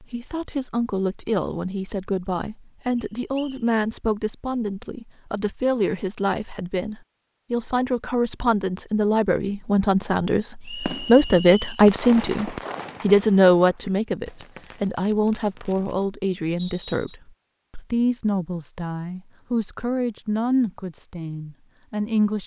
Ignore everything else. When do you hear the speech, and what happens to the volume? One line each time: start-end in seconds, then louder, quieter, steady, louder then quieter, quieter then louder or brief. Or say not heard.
0.0-22.4 louder then quieter.